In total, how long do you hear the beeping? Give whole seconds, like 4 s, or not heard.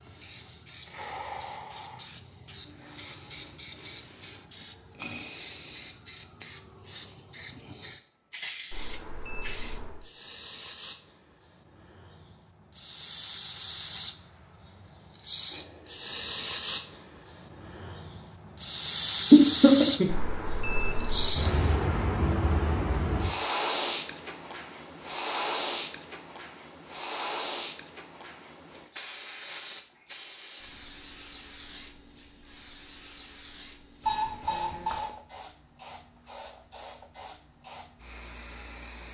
4 s.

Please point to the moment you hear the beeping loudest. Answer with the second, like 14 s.
34 s.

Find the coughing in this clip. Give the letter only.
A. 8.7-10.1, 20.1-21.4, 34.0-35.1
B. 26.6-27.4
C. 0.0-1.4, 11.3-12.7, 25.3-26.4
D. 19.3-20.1
D.